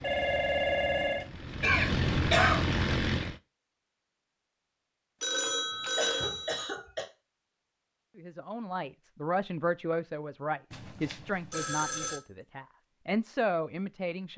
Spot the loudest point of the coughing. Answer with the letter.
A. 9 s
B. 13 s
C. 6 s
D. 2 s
D.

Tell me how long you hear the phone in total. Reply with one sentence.
You can hear the phone for 4 seconds altogether.